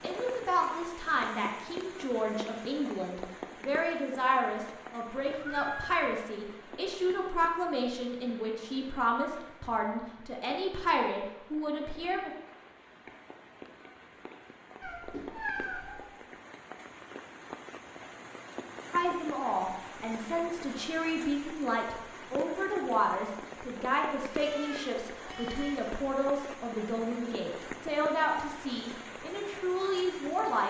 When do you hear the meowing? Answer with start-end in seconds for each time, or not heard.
5.1-6.0, 14.8-16.1, 24.3-25.9.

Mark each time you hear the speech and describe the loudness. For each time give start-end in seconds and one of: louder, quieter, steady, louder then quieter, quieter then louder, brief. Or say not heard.
0.0-12.3 steady
18.9-30.6 steady.